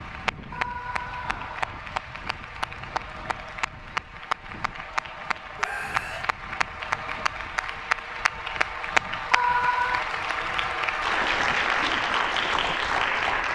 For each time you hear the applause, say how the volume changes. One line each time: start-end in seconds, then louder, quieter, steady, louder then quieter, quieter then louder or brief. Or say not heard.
0.0-13.4 louder.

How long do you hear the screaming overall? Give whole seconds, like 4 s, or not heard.
3 s.